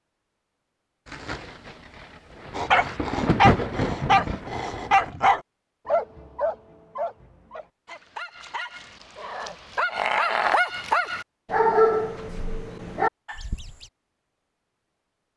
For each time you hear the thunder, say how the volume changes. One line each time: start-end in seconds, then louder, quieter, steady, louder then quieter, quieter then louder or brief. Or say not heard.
1.1-5.2 louder then quieter.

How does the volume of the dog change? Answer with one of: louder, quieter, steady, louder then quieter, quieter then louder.
quieter then louder.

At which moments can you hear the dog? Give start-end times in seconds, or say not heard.
2.5-13.8.